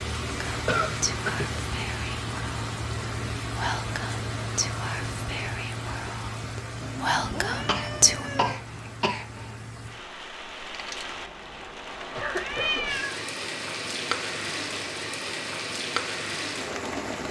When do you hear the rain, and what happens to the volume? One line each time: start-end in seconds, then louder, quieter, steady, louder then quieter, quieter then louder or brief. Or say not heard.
0.0-17.2 quieter then louder.